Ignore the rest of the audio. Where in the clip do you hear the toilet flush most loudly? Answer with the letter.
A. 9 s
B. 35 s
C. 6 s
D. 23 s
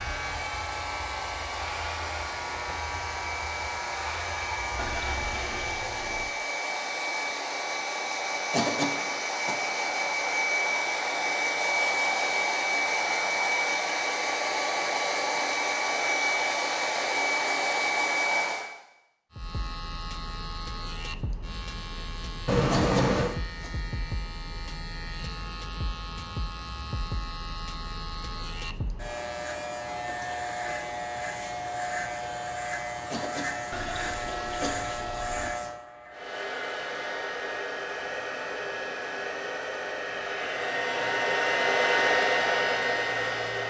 D.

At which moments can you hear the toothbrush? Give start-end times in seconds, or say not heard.
not heard.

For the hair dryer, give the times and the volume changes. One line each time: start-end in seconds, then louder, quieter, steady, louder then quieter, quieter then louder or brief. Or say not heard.
0.0-18.7 louder
36.1-43.6 louder.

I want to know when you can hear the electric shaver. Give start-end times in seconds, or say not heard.
0.0-5.8, 19.3-43.6.